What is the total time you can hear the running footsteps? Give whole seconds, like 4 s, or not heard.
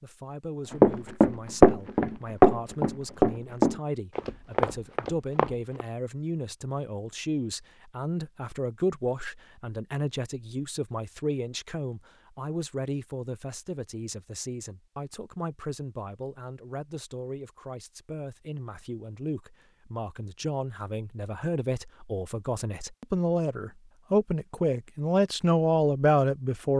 5 s.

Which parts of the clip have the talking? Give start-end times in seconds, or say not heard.
0.0-26.7.